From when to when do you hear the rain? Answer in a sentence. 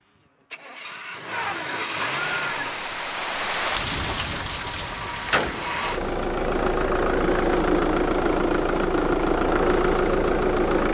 You can hear the rain from 2.4 to 10.8 s.